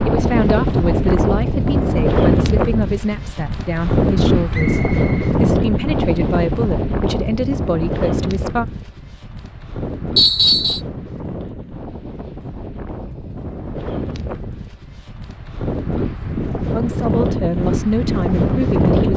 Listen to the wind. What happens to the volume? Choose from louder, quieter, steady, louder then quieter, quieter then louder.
quieter then louder.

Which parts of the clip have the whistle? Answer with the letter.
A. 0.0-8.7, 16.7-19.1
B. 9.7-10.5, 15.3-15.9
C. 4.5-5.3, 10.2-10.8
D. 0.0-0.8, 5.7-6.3
C.